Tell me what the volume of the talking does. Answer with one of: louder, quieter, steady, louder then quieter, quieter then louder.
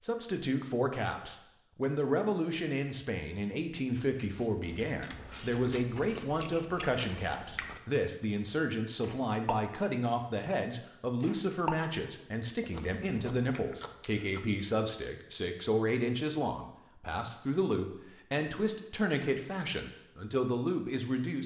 steady.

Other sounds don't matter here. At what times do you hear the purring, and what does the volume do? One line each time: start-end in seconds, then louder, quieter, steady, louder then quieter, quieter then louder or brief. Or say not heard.
not heard.